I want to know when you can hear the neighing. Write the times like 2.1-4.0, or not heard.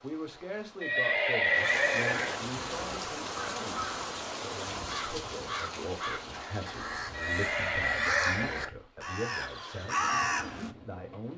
0.8-2.4, 7.1-8.7.